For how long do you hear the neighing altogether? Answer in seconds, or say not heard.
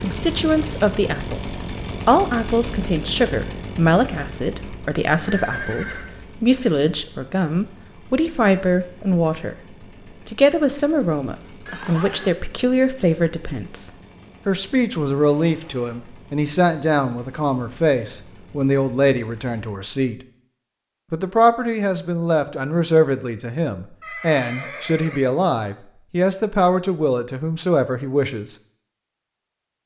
3 s.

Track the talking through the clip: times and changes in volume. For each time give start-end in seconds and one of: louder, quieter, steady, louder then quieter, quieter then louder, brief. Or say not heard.
0.0-20.2 steady
21.1-28.6 steady.